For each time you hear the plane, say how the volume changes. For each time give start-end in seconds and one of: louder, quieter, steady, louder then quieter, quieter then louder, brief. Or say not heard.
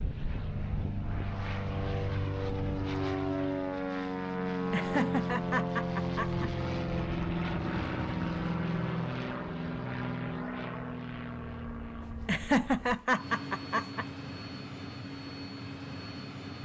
0.0-16.6 quieter.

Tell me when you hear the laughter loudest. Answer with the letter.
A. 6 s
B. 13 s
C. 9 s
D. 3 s
B.